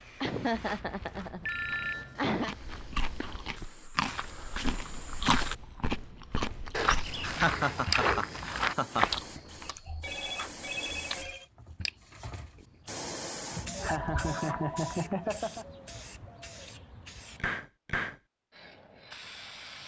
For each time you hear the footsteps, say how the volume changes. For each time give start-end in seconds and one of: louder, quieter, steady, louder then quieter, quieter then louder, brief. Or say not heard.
0.5-9.2 louder.